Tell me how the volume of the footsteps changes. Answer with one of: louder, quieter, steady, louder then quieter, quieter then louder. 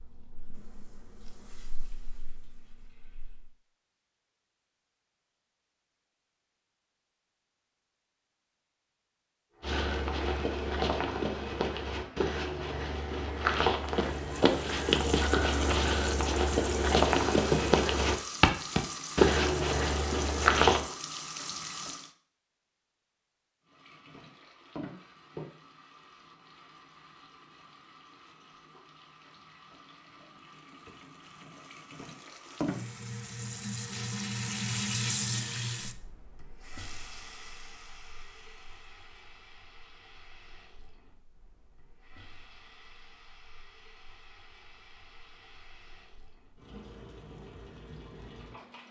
louder.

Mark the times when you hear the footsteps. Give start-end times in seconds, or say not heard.
9.6-20.9.